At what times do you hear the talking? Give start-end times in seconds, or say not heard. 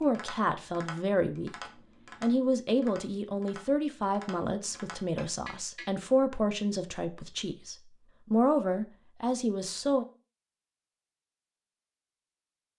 0.0-10.1.